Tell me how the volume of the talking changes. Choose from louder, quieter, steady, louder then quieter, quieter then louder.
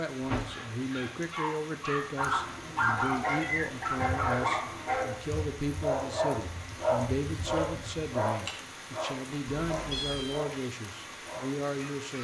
steady.